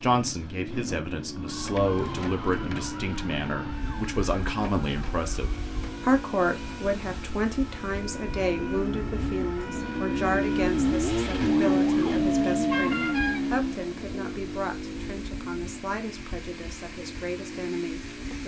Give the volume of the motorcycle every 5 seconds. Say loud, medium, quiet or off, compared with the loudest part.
quiet, medium, loud, quiet.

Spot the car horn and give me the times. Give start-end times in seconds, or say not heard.
12.7-13.4.